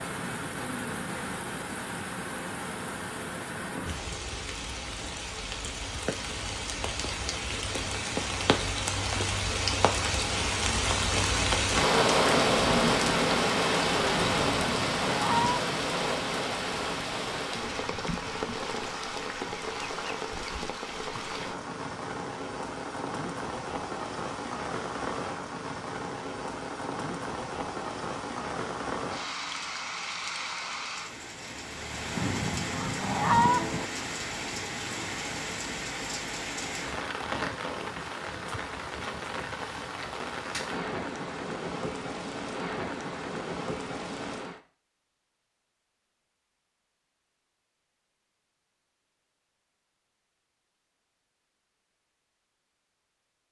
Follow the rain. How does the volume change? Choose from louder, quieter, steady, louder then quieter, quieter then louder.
louder then quieter.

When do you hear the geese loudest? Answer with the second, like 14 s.
33 s.